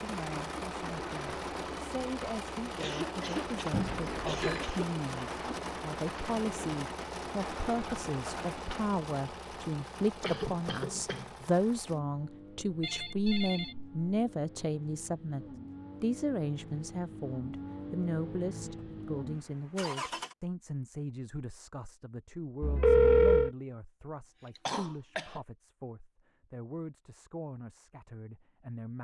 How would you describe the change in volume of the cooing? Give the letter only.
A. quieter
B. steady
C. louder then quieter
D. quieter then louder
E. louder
B.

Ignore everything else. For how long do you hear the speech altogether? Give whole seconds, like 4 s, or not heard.
29 s.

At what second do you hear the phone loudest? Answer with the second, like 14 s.
23 s.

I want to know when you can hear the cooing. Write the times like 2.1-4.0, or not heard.
0.0-8.9.